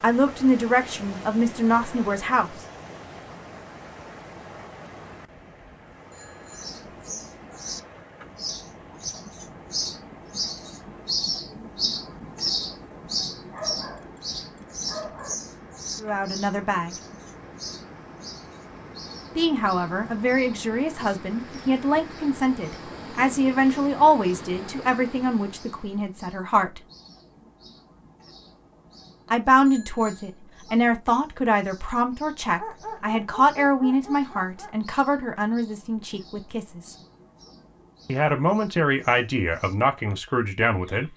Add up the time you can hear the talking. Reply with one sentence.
You can hear the talking for 22 seconds altogether.